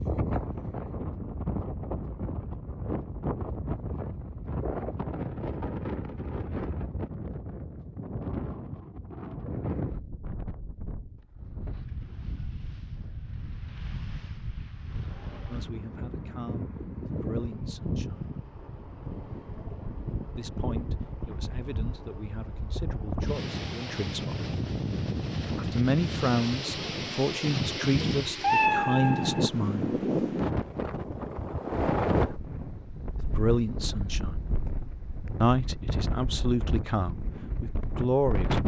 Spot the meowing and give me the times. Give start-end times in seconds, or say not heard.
28.0-29.5.